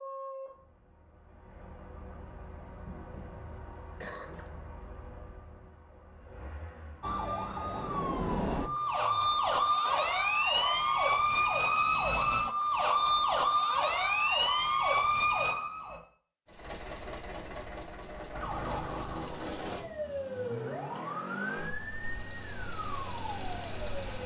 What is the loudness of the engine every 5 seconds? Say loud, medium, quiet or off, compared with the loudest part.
medium, medium, off, loud, loud.